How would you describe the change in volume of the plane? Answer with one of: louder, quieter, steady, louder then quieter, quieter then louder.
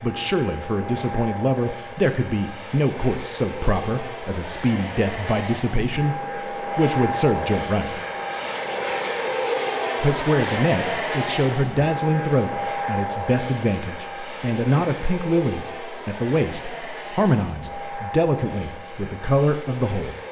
louder then quieter.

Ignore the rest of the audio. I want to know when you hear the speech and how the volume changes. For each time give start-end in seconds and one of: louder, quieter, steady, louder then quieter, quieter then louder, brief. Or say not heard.
0.0-8.0 steady
10.0-20.1 steady.